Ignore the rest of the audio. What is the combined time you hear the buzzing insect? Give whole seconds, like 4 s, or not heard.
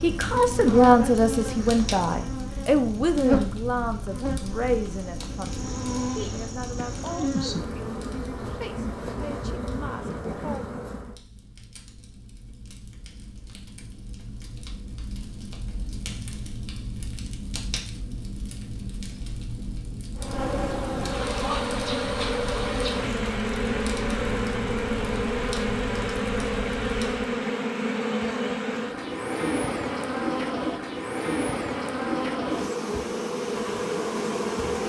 26 s.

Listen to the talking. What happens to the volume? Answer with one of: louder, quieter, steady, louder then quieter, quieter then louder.
quieter.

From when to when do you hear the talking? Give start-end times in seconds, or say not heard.
0.0-10.8.